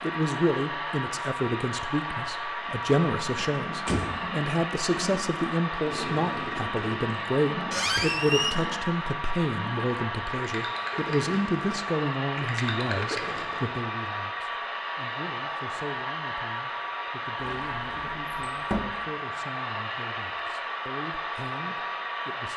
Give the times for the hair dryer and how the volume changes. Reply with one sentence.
The hair dryer can be heard from 0.0 to 22.5 s, at a steady volume.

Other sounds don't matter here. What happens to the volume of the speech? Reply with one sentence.
The volume of the speech goes down.